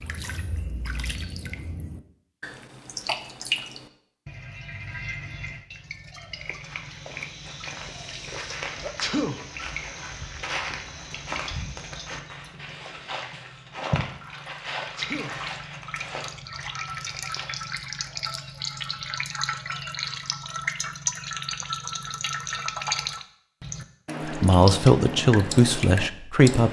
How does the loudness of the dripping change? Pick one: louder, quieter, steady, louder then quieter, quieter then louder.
quieter then louder.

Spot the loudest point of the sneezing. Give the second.
9 s.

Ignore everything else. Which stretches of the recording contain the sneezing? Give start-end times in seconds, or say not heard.
8.8-9.3, 14.8-15.3.